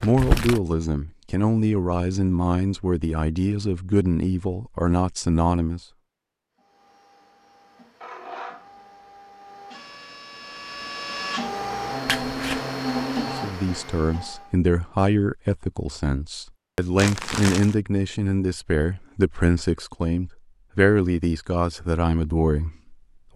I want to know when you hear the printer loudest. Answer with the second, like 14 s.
13 s.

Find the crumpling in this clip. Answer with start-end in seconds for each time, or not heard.
0.0-0.6, 12.1-12.6, 16.9-17.8.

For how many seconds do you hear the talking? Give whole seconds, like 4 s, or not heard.
16 s.